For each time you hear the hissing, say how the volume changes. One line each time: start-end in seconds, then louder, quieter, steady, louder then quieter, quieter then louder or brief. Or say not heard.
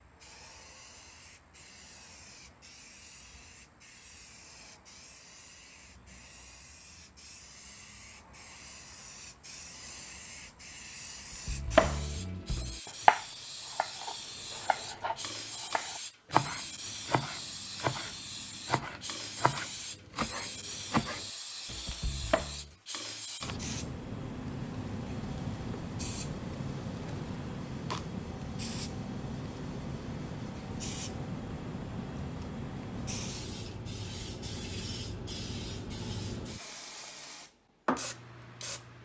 0.0-39.0 louder.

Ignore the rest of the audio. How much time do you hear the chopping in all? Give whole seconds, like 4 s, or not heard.
11 s.